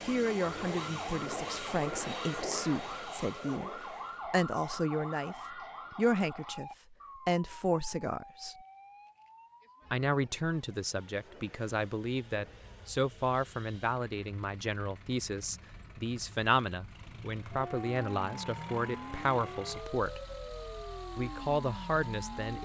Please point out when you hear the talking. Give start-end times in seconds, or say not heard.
0.0-8.6, 9.9-20.2, 21.1-22.6.